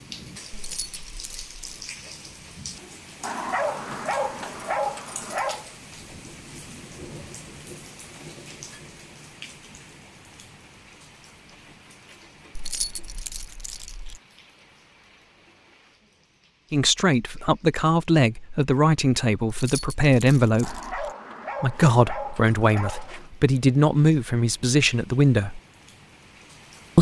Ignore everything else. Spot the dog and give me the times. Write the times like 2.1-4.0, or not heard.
3.2-5.7, 20.6-23.3.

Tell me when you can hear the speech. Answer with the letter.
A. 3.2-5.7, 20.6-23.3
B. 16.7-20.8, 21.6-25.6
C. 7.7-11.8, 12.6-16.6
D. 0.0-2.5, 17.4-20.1
B.